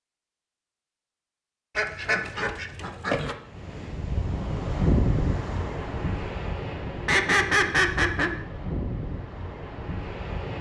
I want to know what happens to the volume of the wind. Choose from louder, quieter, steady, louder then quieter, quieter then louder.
quieter.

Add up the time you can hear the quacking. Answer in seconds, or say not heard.
3 s.